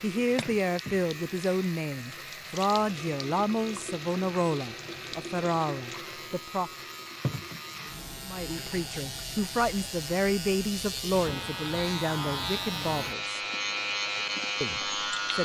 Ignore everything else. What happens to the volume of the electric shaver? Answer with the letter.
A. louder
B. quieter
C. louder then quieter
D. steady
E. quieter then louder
A.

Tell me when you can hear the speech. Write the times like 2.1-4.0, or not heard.
0.0-6.7, 8.2-13.4, 14.6-15.3.